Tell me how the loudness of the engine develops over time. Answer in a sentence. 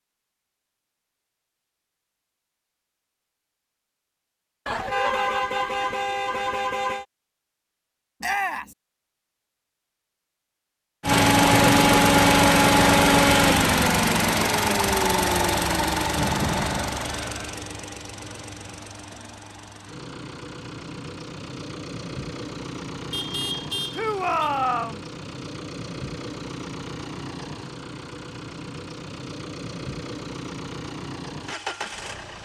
The volume of the engine goes down.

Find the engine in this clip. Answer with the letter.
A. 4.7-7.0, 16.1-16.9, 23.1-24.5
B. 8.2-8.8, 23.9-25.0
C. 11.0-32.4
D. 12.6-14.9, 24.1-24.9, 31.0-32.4
C.